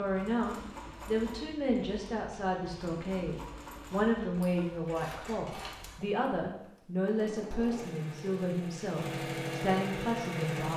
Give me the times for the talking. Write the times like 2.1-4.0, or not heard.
0.0-10.7.